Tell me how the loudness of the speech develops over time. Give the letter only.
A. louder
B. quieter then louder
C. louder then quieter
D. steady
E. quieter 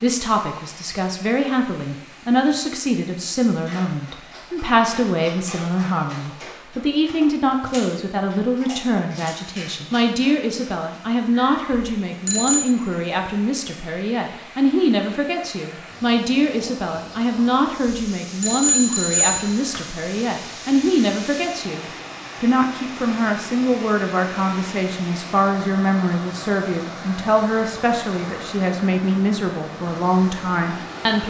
D.